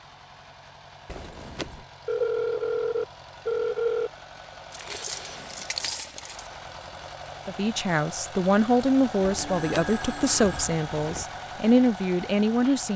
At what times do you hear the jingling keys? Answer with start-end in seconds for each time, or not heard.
1.1-1.9, 4.7-6.5, 9.2-11.2.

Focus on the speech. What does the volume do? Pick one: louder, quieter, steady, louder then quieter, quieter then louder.
quieter then louder.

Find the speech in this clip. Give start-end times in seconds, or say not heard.
7.5-12.9.